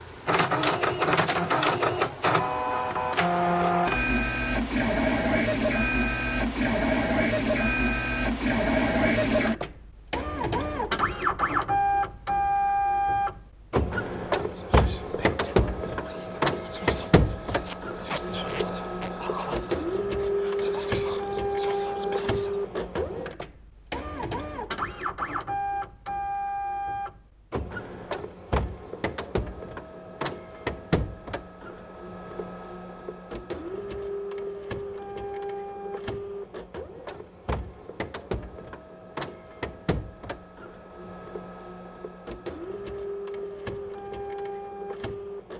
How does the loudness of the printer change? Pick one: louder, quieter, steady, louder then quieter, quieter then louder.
quieter.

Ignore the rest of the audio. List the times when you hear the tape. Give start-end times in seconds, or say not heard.
17.6-19.1.